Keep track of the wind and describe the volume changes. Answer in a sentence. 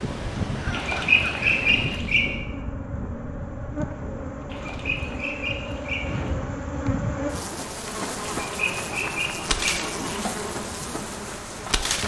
The loudness of the wind goes down.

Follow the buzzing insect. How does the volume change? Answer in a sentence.
The volume of the buzzing insect goes up.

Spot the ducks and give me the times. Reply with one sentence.
The ducks can be heard from 0.7 to 2.2 s, from 4.5 to 6.3 s and from 8.3 to 10.2 s.